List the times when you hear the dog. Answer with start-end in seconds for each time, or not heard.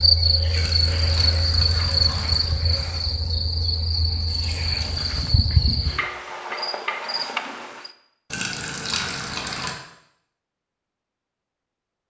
not heard.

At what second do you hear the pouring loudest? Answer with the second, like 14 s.
9 s.